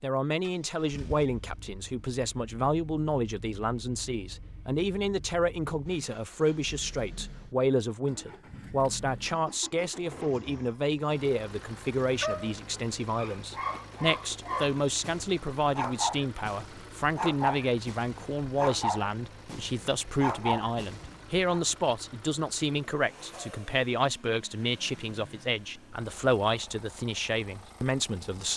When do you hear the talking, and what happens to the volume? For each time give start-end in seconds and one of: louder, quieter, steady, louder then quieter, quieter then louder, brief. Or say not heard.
0.0-28.5 steady.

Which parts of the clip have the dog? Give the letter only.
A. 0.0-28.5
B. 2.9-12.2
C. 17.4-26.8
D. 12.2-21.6
D.